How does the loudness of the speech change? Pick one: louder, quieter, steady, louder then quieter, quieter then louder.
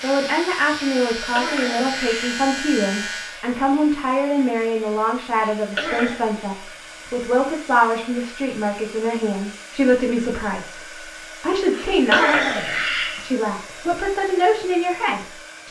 steady.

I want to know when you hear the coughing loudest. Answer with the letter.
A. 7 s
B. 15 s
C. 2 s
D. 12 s
D.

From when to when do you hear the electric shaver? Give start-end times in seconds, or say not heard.
0.0-3.4.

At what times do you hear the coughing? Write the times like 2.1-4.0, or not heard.
1.1-2.5, 5.5-6.2, 11.7-13.2.